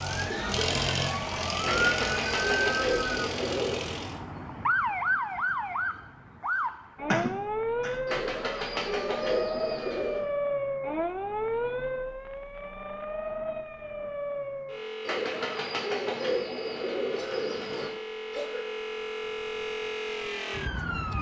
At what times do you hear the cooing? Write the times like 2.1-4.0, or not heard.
1.6-3.9, 8.1-10.2, 15.1-17.9.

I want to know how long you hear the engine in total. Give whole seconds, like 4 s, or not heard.
4 s.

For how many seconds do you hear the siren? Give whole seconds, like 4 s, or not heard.
21 s.